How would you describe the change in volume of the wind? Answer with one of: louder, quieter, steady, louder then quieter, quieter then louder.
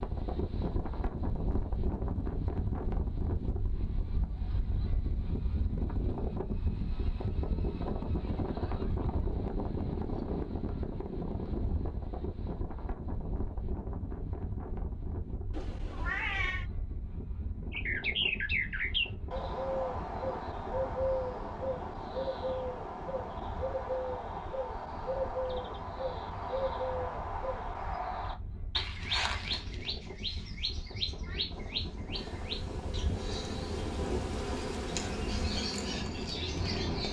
quieter then louder.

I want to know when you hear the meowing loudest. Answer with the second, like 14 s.
16 s.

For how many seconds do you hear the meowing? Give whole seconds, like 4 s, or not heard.
2 s.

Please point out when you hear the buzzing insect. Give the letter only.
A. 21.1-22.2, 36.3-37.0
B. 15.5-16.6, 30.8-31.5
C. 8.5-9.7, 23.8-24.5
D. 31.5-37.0
D.